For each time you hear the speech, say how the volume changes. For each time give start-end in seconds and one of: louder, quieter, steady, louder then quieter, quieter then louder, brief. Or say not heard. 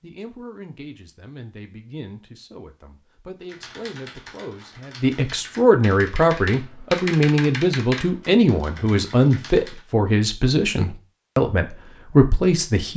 0.0-12.9 louder.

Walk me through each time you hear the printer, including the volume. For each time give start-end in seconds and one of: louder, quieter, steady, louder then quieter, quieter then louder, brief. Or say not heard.
not heard.